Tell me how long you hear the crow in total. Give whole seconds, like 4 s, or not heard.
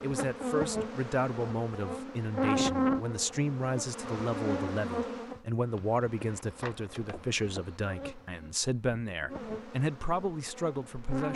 not heard.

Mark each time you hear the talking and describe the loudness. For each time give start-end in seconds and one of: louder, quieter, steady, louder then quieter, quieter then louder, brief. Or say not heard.
0.0-11.3 steady.